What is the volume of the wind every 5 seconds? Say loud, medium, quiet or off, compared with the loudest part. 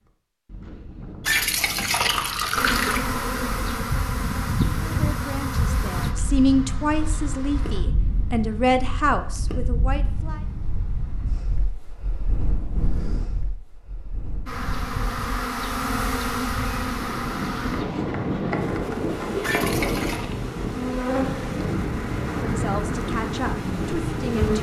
medium, medium, medium, loud, loud.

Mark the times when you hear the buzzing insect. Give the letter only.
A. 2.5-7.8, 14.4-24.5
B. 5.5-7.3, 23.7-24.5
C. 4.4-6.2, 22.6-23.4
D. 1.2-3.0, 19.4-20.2
A.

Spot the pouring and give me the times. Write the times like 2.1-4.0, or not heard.
1.2-3.0, 19.4-20.2.